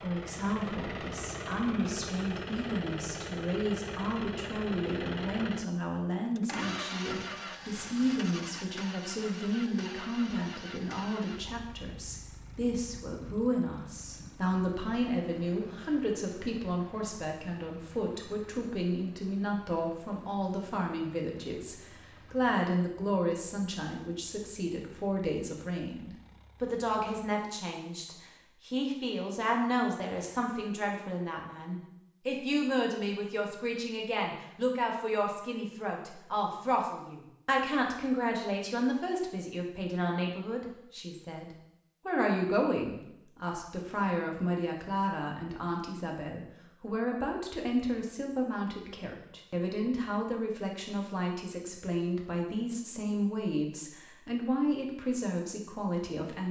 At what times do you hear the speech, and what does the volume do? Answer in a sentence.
You can hear the speech from 0.0 to 56.4 s, at a steady volume.